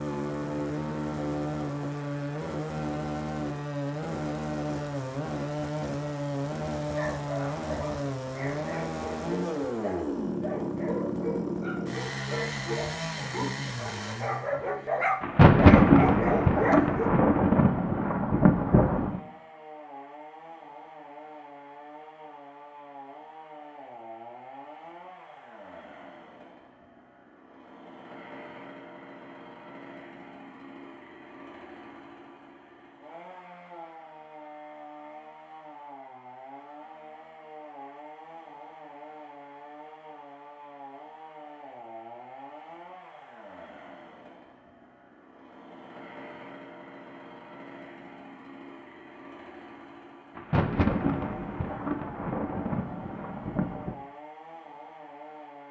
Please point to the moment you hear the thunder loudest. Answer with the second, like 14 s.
16 s.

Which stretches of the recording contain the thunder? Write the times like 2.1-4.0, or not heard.
15.2-19.2, 50.4-54.0.